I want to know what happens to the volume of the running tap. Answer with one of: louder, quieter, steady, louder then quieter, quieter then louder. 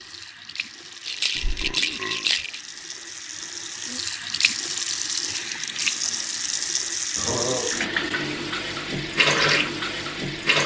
louder.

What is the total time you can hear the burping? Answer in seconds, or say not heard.
3 s.